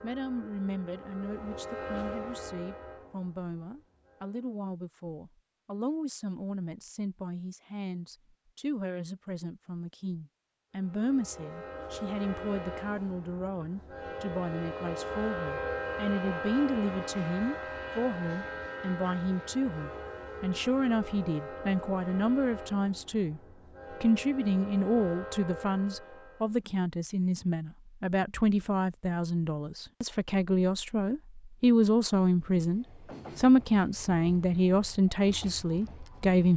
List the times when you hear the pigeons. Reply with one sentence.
The pigeons can't be heard in this clip.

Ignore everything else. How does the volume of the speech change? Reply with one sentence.
The loudness of the speech goes up.